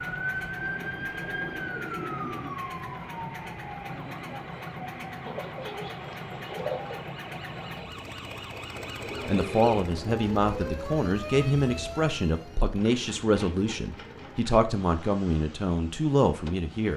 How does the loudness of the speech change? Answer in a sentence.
The volume of the speech stays about the same.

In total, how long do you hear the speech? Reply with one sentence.
You can hear the speech for 8 seconds altogether.